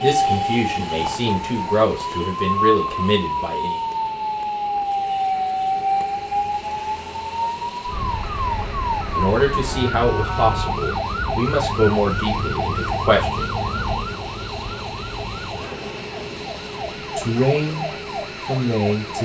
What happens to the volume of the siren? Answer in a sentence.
The volume of the siren goes down.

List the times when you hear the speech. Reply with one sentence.
You can hear the speech from 0.0 to 3.8 s, from 9.1 to 13.7 s and from 17.1 to 19.2 s.